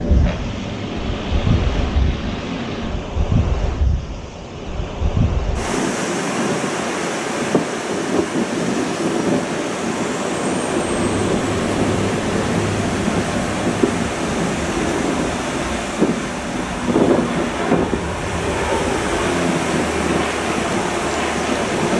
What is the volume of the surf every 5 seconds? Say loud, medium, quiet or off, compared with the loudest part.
medium, loud, loud, loud, loud.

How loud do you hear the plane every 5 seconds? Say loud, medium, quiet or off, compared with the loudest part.
loud, off, loud, loud, loud.